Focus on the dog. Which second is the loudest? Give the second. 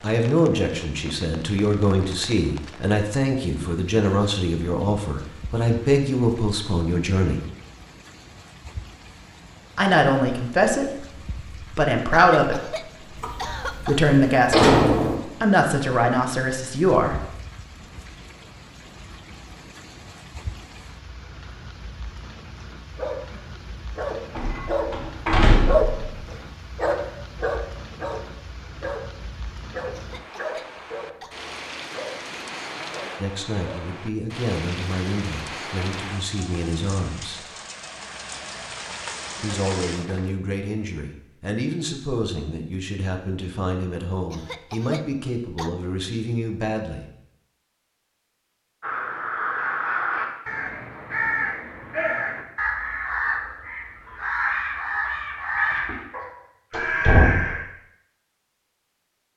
26 s.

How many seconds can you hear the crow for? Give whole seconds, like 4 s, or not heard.
9 s.